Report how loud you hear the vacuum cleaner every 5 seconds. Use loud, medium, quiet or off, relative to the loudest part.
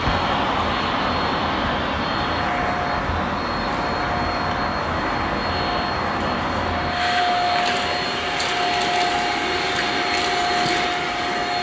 medium, loud, loud.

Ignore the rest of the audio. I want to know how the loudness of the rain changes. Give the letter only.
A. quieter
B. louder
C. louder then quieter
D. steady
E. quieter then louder
A.